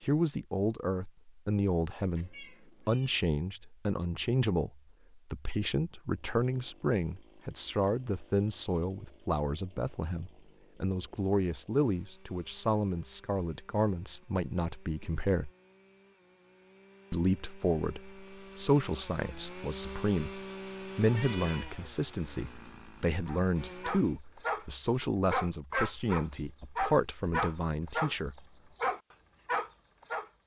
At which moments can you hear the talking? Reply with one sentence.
You can hear the talking from 0.0 to 15.5 s and from 17.1 to 28.4 s.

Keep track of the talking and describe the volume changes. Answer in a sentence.
The volume of the talking stays about the same.